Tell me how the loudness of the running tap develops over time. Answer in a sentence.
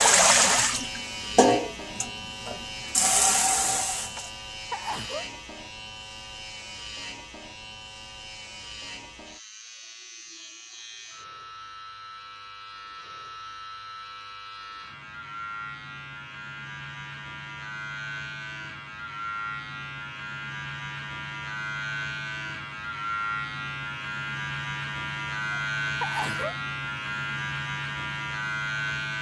The volume of the running tap goes down, then up.